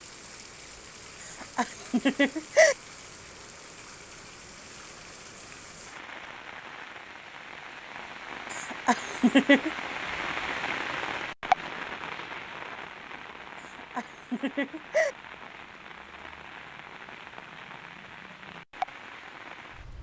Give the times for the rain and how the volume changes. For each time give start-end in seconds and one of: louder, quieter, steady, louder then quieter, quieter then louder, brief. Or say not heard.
0.0-19.9 louder then quieter.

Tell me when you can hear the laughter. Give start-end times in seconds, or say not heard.
1.4-2.8, 8.5-9.7, 13.9-15.2.